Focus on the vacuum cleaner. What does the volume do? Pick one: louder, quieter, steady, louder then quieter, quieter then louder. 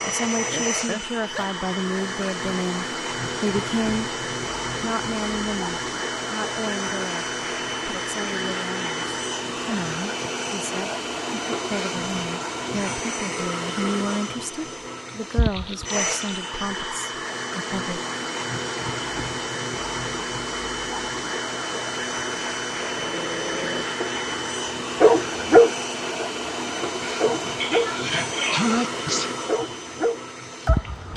steady.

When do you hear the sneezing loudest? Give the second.
29 s.